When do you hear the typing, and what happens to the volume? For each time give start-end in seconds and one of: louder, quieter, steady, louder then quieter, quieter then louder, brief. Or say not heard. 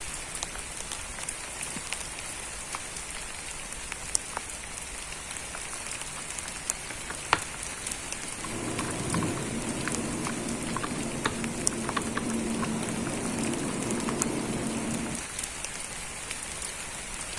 6.8-15.2 steady.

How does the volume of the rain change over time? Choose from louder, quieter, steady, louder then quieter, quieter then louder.
steady.